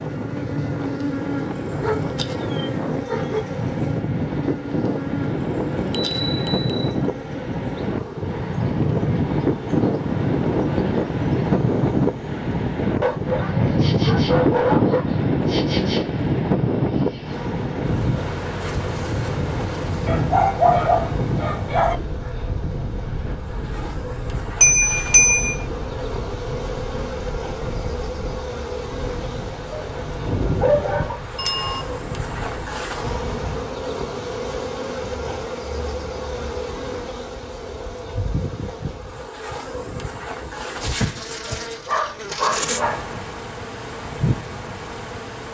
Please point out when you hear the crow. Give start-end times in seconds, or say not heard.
not heard.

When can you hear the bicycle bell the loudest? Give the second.
25 s.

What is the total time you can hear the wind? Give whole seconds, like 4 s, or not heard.
34 s.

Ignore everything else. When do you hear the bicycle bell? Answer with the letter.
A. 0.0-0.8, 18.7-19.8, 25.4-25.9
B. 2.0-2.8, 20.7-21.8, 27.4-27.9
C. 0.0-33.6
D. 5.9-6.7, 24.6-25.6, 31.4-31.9
D.